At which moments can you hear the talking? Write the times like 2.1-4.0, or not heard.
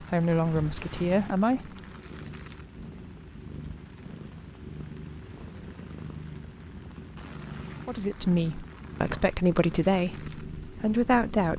0.0-1.7, 7.8-11.5.